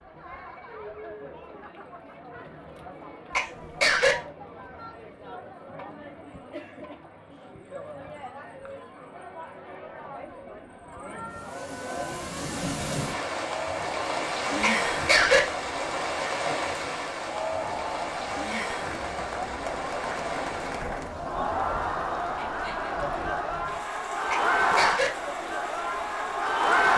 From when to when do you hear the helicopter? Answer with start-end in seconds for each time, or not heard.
not heard.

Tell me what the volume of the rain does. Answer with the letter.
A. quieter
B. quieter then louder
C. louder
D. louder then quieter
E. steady
A.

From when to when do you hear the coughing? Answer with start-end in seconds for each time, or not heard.
3.3-4.2, 14.6-15.4, 24.3-25.1.